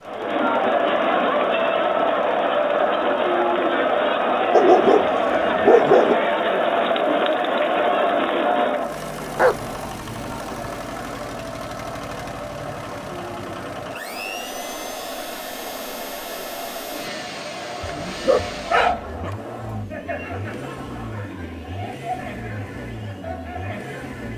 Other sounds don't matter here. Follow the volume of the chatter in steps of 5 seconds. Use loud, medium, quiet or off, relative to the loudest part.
loud, loud, quiet, quiet, quiet.